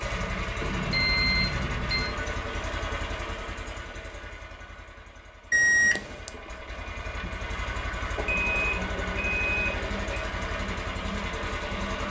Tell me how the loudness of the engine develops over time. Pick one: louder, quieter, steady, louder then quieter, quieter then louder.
quieter then louder.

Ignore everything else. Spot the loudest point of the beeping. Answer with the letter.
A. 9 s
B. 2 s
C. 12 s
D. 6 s
D.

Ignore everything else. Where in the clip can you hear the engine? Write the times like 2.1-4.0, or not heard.
0.0-12.0.